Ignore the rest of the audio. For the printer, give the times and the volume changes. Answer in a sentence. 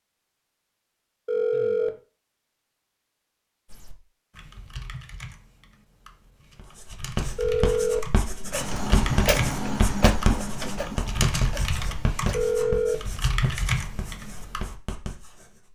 The printer can be heard from 8.5 to 12.8 s, getting quieter.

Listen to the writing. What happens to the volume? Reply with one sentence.
The volume of the writing goes up, then down.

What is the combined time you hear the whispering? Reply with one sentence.
The whispering can't be heard in this clip.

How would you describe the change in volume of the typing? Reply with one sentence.
The loudness of the typing goes up.